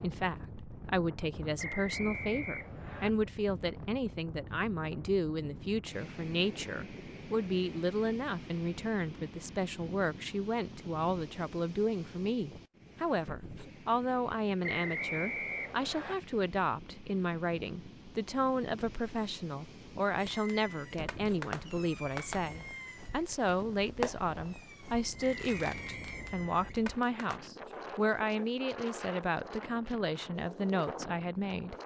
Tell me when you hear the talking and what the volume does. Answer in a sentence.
You can hear the talking from 0.0 to 31.8 s, at a steady volume.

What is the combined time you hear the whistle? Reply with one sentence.
You can hear the whistle for 5 seconds altogether.